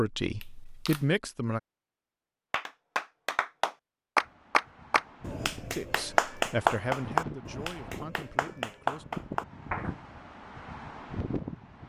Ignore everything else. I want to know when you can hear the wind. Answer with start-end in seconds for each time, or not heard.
4.2-11.8.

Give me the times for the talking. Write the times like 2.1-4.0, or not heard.
0.0-1.6, 5.7-9.1.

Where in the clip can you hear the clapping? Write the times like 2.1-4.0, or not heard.
2.5-9.9.